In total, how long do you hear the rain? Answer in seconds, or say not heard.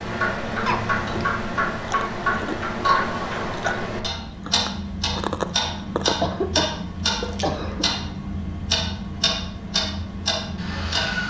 not heard.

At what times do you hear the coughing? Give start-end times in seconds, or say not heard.
0.7-1.4, 6.2-7.8.